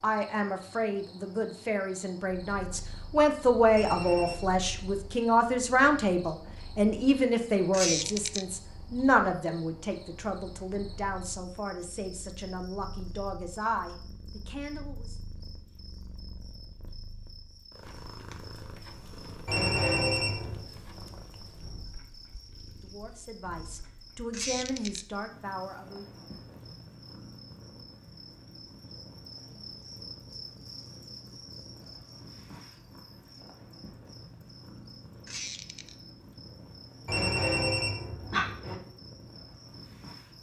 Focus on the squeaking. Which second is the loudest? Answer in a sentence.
The loudest moment of the squeaking is at 8 seconds.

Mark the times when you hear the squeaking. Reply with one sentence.
You can hear the squeaking from 7.7 to 8.4 s, from 24.3 to 25.1 s and from 35.2 to 36.0 s.